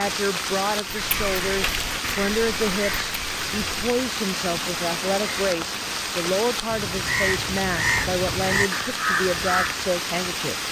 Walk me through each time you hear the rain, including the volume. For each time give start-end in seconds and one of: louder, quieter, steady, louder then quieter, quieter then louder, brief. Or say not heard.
0.0-10.6 steady.